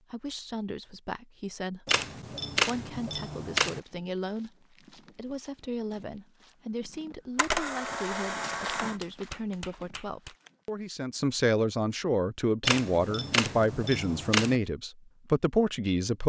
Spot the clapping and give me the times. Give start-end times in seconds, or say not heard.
8.9-10.3.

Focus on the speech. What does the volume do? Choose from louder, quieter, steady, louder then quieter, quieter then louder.
louder.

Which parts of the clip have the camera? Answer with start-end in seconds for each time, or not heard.
1.9-3.8, 7.3-8.9, 12.6-14.6.